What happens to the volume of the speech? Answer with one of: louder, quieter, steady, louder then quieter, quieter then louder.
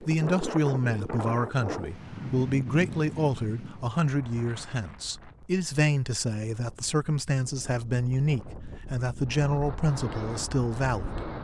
steady.